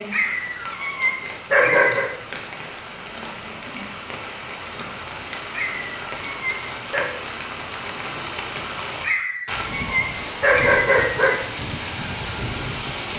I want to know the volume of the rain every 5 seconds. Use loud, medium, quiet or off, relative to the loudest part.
medium, loud, loud.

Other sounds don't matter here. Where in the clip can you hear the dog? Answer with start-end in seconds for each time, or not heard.
0.1-2.1, 5.5-7.1, 9.0-11.4.